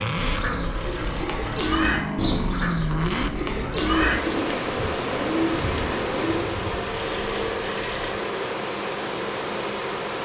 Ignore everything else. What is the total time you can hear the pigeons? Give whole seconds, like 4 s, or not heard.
6 s.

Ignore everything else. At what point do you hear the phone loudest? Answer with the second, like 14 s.
8 s.